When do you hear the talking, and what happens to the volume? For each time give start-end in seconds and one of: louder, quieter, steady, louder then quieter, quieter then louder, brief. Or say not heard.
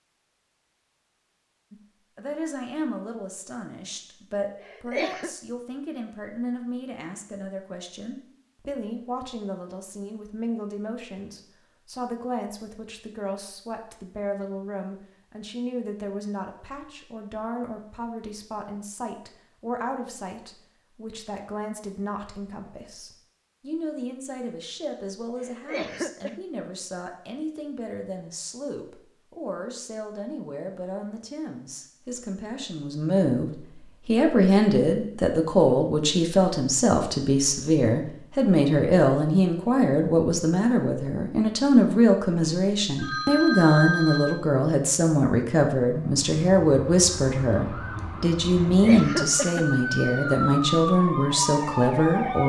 1.7-52.4 louder.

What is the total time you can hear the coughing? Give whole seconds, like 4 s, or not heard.
3 s.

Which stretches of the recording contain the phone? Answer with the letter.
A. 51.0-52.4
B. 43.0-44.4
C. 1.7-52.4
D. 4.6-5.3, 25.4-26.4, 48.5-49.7
B.